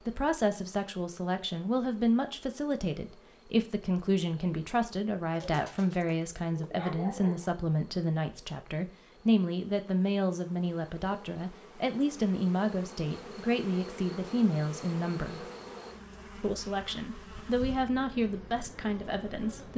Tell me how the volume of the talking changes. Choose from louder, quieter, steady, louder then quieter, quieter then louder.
steady.